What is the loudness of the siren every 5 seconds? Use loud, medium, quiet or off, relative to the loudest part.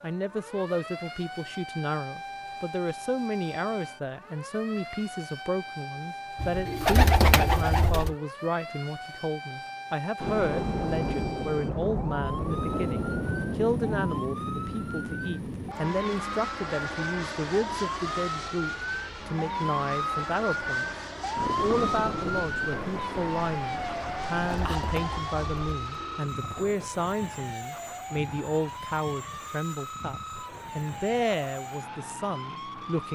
medium, medium, medium, loud, loud, medium, medium.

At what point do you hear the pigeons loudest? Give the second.
7 s.